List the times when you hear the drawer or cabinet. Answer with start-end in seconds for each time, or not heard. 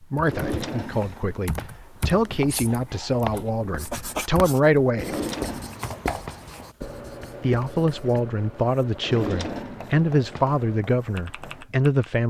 0.2-1.7, 4.9-6.4, 9.0-10.4.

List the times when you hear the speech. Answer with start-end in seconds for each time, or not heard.
0.1-5.2, 7.4-12.2.